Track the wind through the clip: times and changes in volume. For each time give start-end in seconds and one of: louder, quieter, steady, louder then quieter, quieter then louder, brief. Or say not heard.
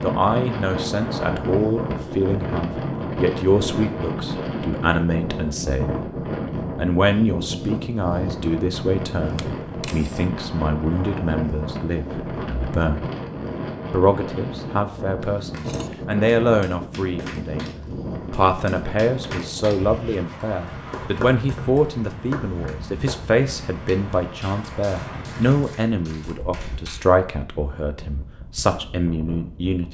0.0-29.8 quieter.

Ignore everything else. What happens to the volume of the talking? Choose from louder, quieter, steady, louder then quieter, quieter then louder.
steady.